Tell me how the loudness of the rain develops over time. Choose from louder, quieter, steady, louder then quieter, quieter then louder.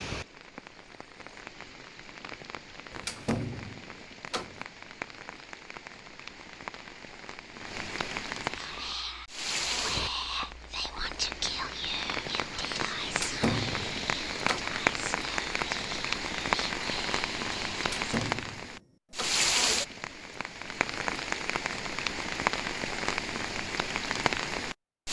louder.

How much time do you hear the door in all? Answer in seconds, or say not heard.
5 s.